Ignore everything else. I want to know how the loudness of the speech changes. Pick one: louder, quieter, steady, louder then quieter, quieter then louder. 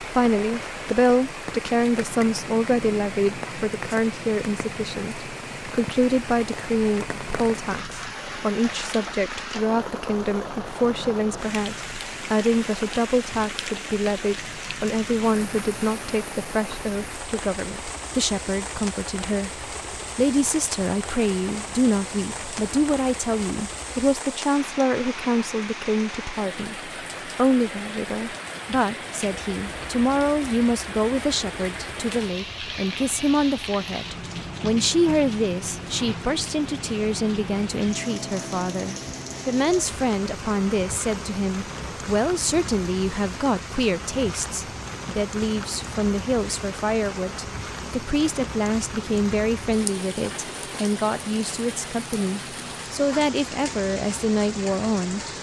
steady.